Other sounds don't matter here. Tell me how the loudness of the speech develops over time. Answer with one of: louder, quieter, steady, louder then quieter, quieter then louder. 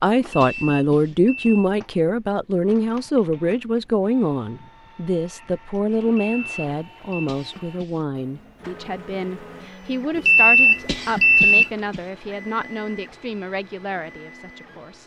quieter.